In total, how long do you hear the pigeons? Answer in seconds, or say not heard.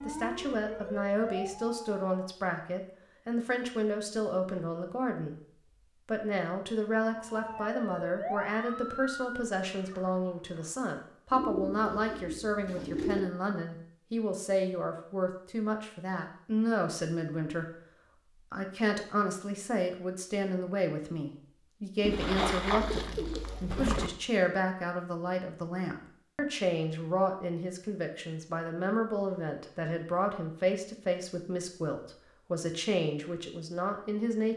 4 s.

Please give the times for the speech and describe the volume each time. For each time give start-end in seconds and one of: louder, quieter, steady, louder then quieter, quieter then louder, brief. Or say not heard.
0.0-34.5 steady.